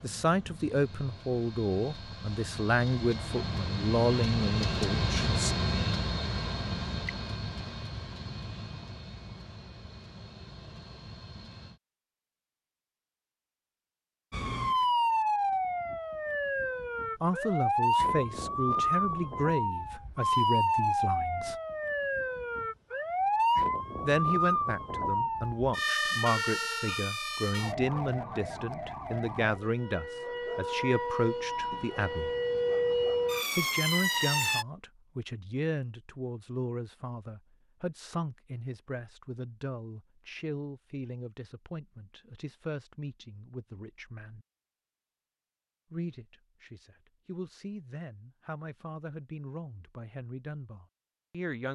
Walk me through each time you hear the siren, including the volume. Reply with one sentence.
You can hear the siren from 14.3 to 34.6 s, getting quieter then louder.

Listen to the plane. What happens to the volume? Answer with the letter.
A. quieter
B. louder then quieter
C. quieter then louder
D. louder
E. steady
B.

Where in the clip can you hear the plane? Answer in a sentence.
You can hear the plane from 0.0 to 11.8 s.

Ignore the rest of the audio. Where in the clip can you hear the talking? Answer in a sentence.
You can hear the talking from 0.0 to 5.5 s, from 17.2 to 21.6 s, from 24.0 to 32.3 s, from 33.5 to 44.5 s and from 45.9 to 51.7 s.